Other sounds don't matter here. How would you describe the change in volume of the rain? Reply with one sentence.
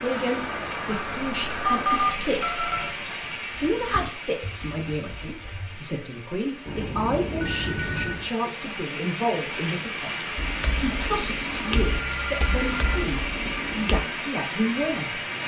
The volume of the rain goes down, then up.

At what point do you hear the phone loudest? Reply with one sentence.
The volume of the phone peaks at 2 seconds.